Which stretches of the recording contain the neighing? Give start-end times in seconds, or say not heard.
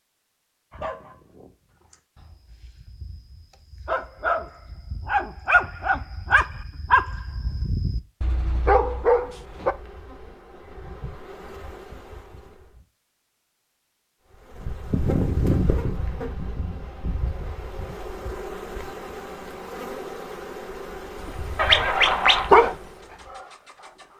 21.6-22.5.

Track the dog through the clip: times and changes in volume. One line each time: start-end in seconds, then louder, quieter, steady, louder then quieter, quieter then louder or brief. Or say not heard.
0.7-9.8 louder
21.2-24.1 brief.